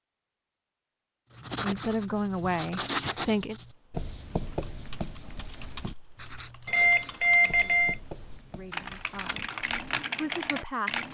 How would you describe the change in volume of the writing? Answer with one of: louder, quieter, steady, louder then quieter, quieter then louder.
quieter.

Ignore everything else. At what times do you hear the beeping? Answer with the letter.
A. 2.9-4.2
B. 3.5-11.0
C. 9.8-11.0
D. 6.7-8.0
D.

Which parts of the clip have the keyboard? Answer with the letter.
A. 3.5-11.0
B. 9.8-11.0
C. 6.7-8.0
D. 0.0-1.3
A.